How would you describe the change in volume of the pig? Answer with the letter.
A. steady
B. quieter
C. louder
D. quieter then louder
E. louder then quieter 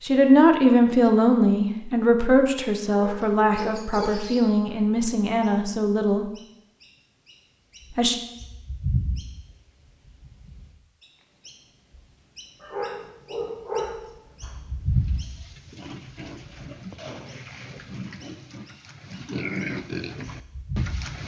C.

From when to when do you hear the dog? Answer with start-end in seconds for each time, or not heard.
2.9-5.2, 12.6-14.9.